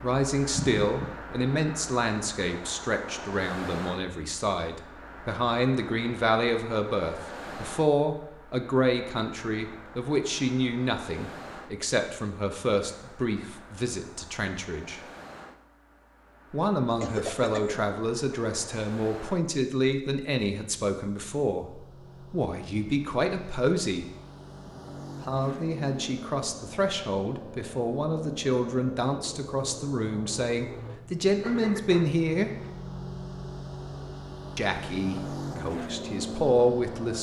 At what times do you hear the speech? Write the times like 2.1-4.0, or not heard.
0.0-15.0, 16.5-24.1, 25.2-32.5, 34.5-37.1.